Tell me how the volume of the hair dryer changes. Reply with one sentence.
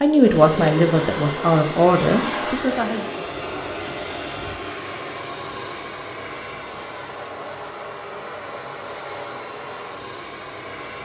The volume of the hair dryer goes down.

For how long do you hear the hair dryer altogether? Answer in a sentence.
The hair dryer can be heard for 11 seconds in total.